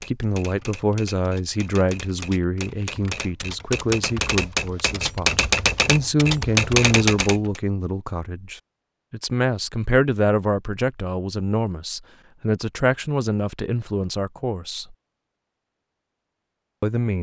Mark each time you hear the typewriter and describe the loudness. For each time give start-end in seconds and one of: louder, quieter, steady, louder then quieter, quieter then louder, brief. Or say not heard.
0.0-7.6 louder.